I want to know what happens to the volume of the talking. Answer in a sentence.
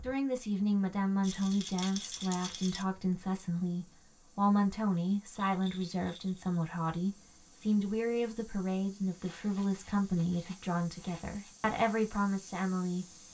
The volume of the talking stays about the same.